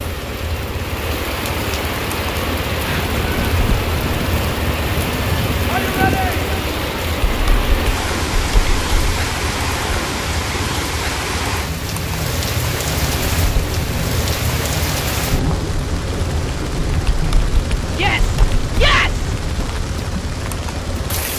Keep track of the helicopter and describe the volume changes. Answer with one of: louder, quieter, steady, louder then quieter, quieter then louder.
steady.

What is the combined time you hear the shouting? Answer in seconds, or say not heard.
2 s.